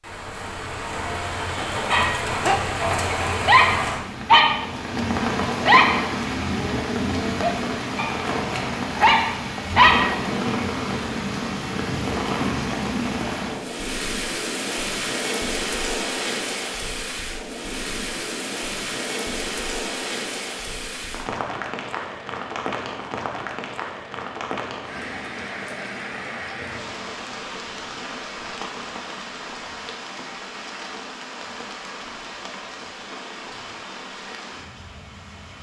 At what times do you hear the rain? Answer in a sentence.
The rain can be heard from 0.0 to 35.5 s.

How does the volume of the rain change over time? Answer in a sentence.
The volume of the rain goes down.